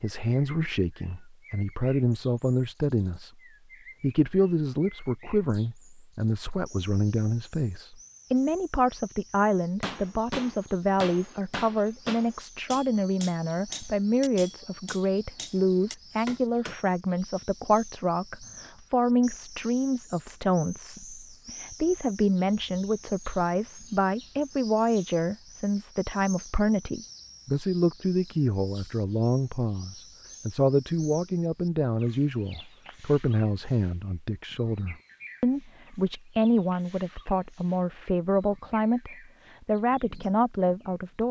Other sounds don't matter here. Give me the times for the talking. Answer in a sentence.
You can hear the talking from 0.0 to 3.3 s and from 4.0 to 41.2 s.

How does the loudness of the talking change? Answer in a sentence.
The loudness of the talking stays about the same.